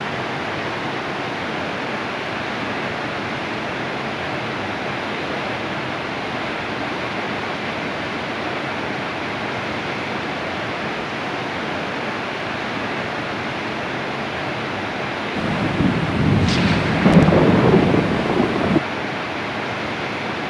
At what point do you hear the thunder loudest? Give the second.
17 s.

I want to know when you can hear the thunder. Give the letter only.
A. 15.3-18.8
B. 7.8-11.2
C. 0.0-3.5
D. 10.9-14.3
A.